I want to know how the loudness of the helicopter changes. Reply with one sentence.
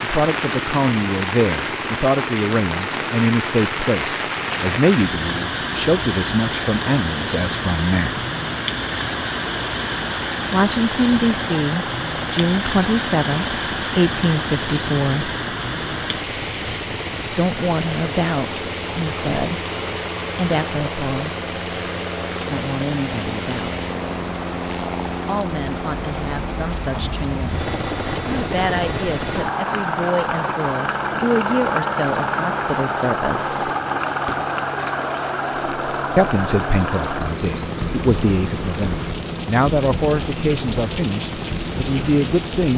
The loudness of the helicopter goes up.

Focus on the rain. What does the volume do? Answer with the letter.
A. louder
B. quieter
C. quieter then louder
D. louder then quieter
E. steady
B.